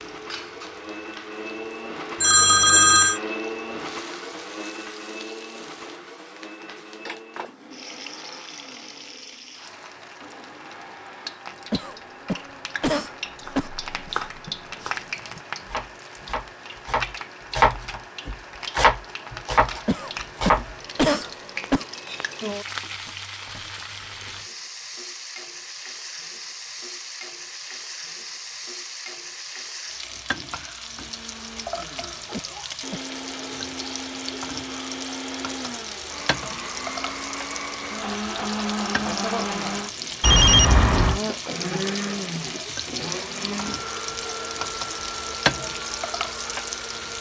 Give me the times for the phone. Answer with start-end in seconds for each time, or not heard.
2.2-3.2, 40.2-41.2.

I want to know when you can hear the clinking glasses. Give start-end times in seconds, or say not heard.
not heard.